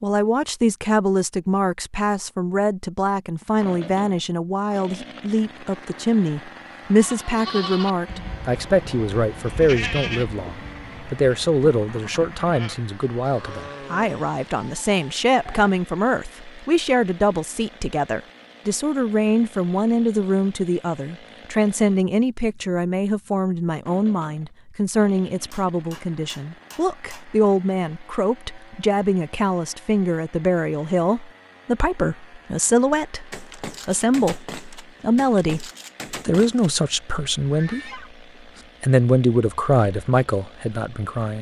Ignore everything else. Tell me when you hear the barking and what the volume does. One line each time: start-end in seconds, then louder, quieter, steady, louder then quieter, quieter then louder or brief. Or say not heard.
not heard.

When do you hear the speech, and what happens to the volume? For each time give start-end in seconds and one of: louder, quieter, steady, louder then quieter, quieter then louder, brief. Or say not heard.
0.0-38.0 steady
38.8-41.3 brief.